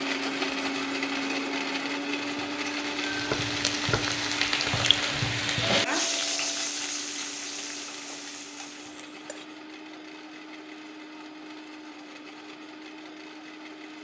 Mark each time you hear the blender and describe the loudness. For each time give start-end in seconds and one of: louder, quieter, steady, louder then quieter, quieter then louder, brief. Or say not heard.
0.0-13.9 quieter.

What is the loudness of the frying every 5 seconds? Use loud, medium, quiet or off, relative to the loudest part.
loud, loud, off.